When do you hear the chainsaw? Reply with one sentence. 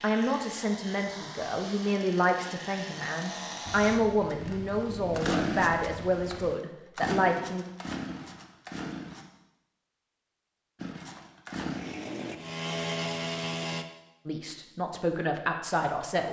The chainsaw can be heard from 0.0 to 9.2 s and from 10.8 to 13.8 s.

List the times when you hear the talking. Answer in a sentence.
You can hear the talking from 0.0 to 7.7 s and from 14.2 to 16.2 s.